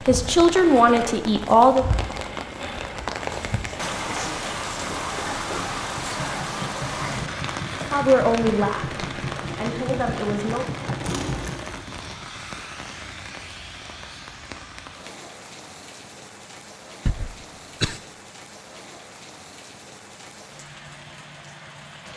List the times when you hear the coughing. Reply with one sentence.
You can hear the coughing from 17.1 to 18.0 s.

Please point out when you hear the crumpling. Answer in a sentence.
You can hear the crumpling from 11.1 to 12.2 s.